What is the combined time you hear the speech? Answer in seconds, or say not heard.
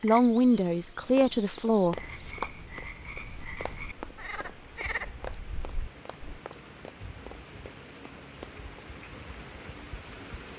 2 s.